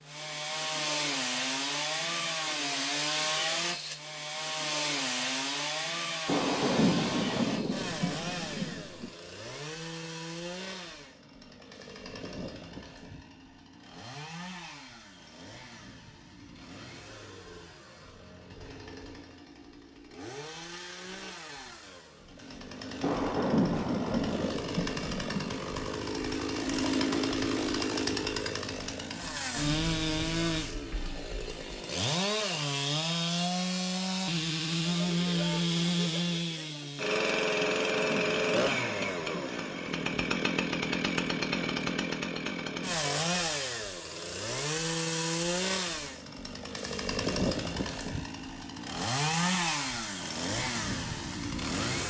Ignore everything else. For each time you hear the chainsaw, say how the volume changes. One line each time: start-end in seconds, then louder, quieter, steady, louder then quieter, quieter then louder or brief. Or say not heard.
0.0-52.0 quieter then louder.